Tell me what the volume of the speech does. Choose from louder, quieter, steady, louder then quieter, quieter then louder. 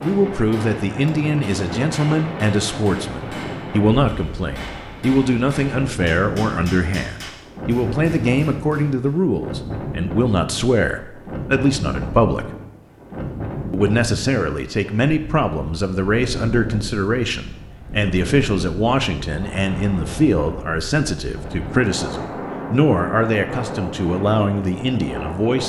steady.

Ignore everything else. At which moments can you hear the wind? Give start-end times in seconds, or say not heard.
0.0-25.6.